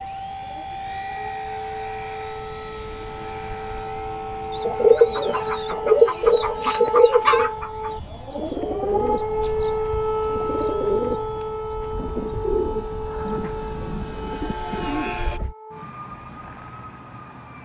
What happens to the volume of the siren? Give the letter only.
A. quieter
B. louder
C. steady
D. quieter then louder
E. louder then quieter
E.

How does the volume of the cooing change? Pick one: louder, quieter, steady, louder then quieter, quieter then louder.
quieter.